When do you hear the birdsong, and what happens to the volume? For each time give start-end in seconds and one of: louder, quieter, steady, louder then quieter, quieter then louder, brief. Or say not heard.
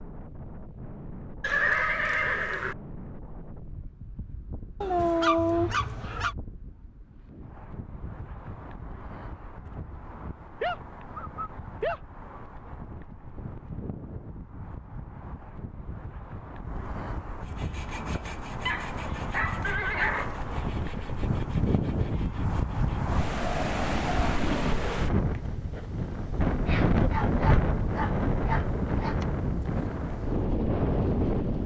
not heard.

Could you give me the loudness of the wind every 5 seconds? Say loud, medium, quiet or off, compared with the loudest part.
quiet, quiet, quiet, medium, loud, loud, loud.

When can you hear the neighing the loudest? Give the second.
2 s.